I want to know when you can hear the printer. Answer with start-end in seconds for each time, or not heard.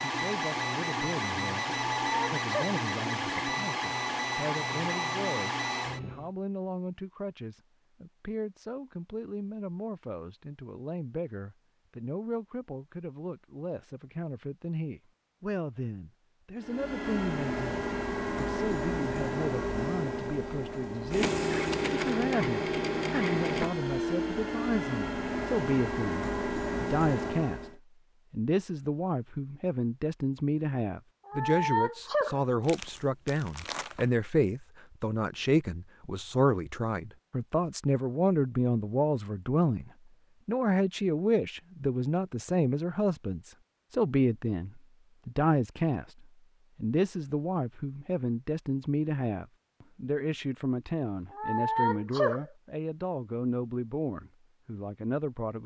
0.0-6.3, 16.6-27.8.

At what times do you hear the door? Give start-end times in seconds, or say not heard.
not heard.